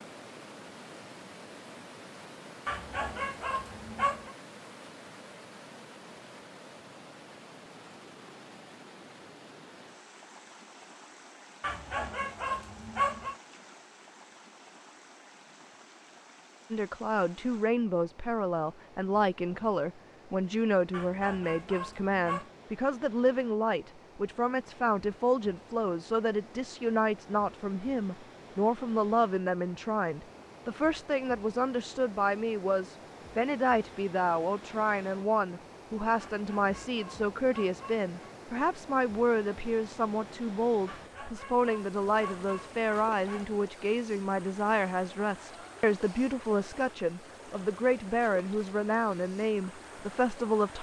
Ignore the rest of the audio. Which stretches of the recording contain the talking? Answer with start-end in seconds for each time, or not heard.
16.7-50.7.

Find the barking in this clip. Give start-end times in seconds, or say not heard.
2.6-4.3, 11.6-13.3, 20.9-22.5, 36.2-38.1, 40.9-43.6.